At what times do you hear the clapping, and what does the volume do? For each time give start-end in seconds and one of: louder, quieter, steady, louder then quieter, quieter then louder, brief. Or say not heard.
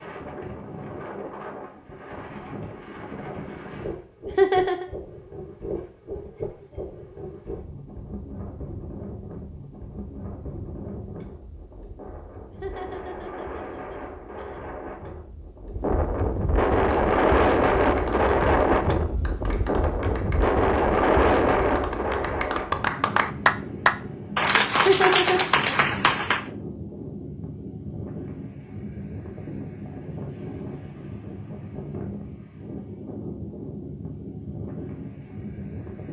16.9-26.4 louder.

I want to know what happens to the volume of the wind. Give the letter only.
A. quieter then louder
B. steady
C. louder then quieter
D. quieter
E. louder
C.